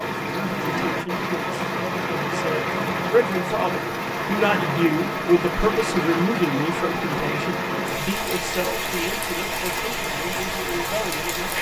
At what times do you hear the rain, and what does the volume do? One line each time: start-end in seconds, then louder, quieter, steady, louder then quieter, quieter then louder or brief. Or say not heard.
0.0-11.5 steady.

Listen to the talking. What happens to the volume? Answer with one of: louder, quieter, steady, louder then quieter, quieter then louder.
louder then quieter.